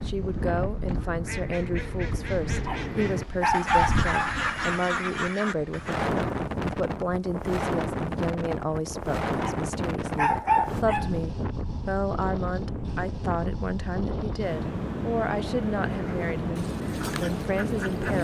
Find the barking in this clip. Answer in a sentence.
You can hear the barking from 2.6 to 4.3 s and from 9.4 to 11.1 s.